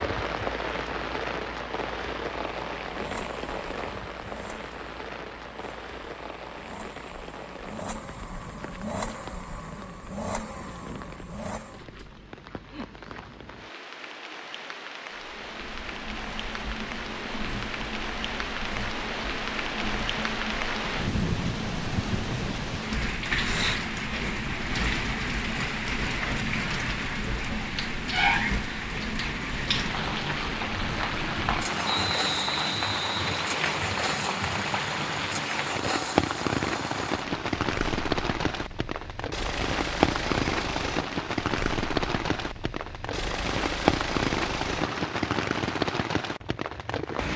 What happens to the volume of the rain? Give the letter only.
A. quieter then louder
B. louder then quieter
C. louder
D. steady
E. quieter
C.